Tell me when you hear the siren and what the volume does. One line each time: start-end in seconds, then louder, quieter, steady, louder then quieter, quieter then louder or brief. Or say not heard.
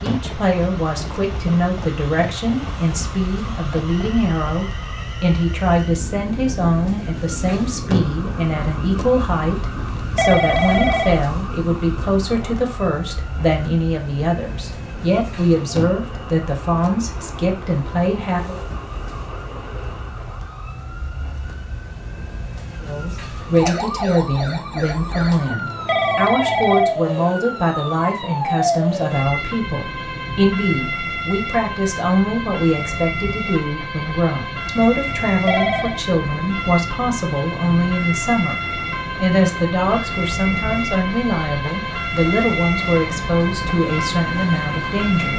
0.0-45.3 louder.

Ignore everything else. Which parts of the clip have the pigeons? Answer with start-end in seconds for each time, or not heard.
not heard.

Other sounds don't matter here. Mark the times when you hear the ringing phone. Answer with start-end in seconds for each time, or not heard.
9.8-11.2, 25.5-26.9, 35.0-36.0.